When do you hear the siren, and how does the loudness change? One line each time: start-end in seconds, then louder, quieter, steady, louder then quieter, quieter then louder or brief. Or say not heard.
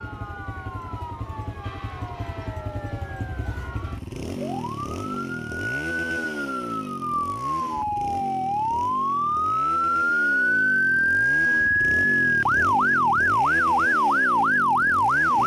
0.0-15.4 louder.